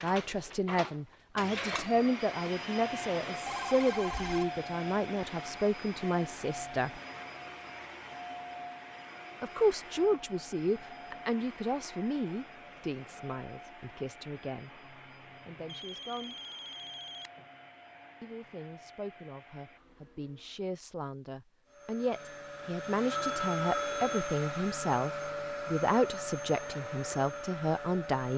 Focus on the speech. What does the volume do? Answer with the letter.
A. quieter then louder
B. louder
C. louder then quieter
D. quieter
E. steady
A.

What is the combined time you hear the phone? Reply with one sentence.
The phone can be heard for 4 seconds in total.